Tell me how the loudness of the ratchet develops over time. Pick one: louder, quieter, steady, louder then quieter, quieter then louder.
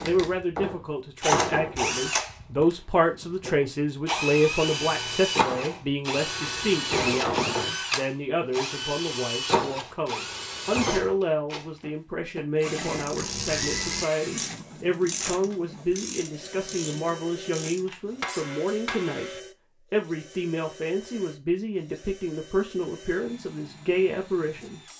quieter.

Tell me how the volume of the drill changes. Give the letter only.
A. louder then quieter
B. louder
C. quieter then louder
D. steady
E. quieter
E.